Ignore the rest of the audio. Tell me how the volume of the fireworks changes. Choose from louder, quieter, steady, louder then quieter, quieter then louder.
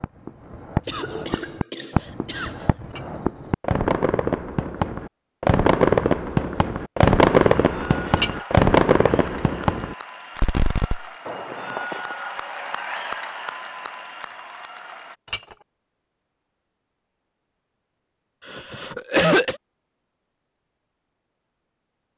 louder then quieter.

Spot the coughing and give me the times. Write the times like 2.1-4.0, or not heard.
0.8-2.7, 18.4-19.6.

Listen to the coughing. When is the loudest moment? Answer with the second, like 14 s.
19 s.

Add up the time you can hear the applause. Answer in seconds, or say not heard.
8 s.